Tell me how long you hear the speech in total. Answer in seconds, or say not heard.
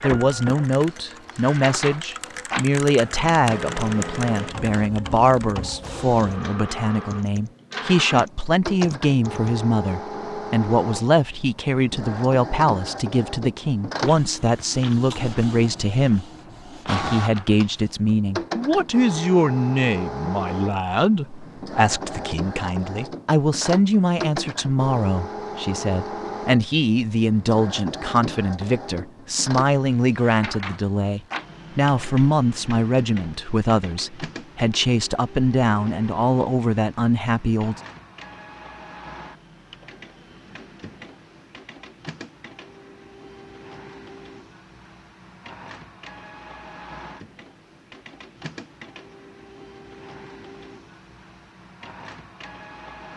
37 s.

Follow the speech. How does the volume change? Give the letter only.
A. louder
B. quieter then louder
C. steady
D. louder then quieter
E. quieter
C.